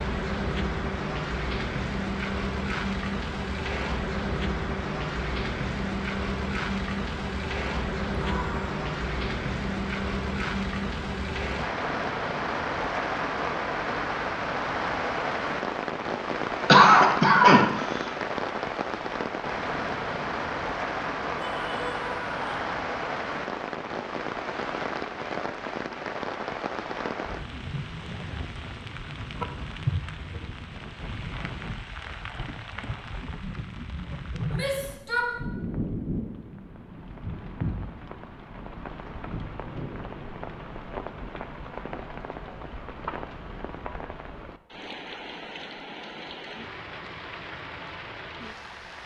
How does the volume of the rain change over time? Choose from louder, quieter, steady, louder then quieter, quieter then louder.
quieter.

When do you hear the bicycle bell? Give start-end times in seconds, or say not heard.
not heard.